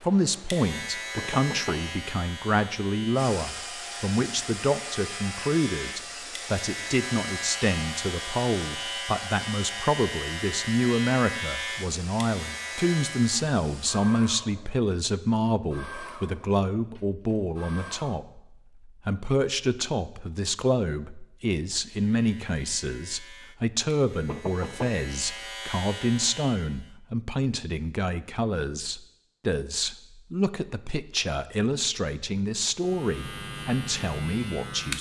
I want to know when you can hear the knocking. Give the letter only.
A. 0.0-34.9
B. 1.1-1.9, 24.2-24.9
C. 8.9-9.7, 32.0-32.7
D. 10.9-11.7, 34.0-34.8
B.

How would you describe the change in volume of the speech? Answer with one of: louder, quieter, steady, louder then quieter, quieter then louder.
steady.